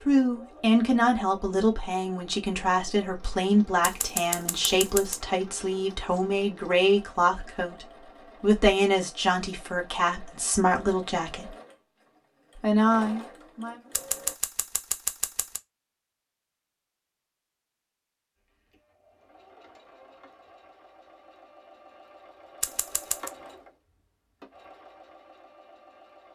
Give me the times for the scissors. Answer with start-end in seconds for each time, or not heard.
3.8-5.2, 13.9-15.6, 22.6-23.3.